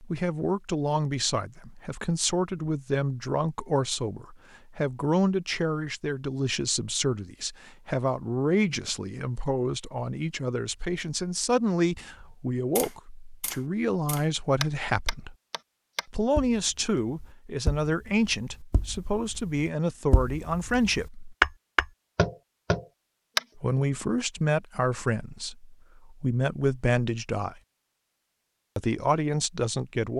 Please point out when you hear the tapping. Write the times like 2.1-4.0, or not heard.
12.2-23.4.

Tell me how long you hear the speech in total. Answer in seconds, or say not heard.
26 s.